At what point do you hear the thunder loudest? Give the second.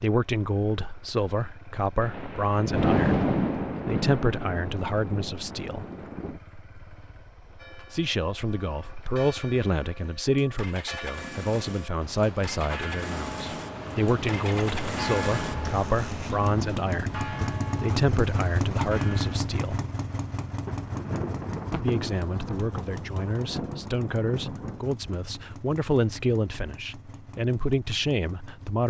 3 s.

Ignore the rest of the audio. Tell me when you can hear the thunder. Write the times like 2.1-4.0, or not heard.
2.0-6.4, 20.6-24.8.